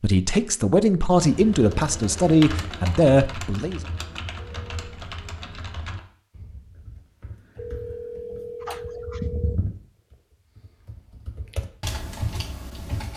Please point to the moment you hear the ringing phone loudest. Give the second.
9 s.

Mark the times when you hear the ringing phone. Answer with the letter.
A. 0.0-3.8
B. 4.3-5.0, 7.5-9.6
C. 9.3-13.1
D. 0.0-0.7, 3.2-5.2
B.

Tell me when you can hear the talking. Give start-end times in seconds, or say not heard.
0.0-3.8.